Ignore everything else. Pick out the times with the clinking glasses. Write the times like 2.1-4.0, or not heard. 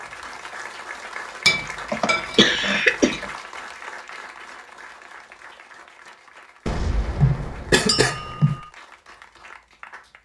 1.4-3.2, 7.8-8.7.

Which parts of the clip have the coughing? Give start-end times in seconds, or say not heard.
1.6-3.2, 6.7-8.6.